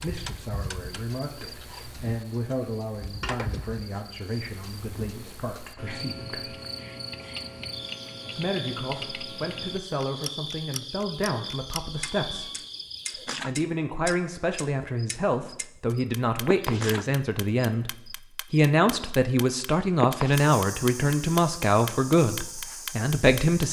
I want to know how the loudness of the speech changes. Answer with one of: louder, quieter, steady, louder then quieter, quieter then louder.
louder.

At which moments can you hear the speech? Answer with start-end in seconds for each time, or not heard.
0.0-6.5, 8.3-12.6, 13.2-23.6.